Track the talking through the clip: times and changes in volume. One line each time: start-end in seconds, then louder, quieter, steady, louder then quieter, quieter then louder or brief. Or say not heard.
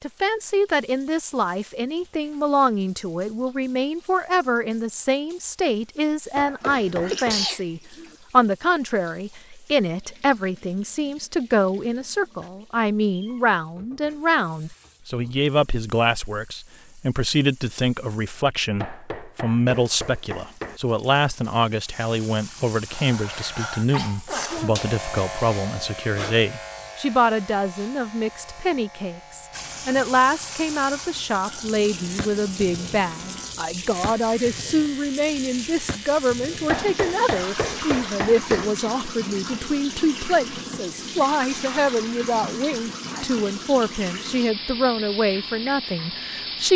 0.0-46.7 steady.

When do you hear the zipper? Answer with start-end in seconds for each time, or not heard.
not heard.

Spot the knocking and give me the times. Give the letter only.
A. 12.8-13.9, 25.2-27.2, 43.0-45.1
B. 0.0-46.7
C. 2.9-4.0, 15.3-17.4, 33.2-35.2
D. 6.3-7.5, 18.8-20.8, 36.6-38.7
D.